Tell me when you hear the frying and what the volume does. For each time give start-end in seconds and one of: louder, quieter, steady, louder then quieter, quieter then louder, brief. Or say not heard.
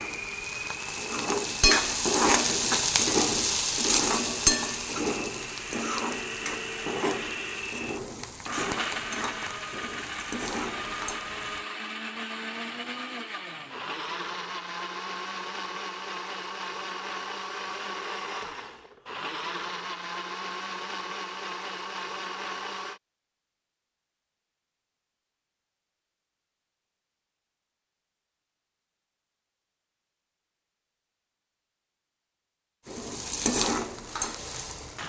0.0-11.7 quieter
32.9-35.0 brief.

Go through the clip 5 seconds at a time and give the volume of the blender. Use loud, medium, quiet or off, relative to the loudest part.
loud, loud, loud, loud, loud, off, off.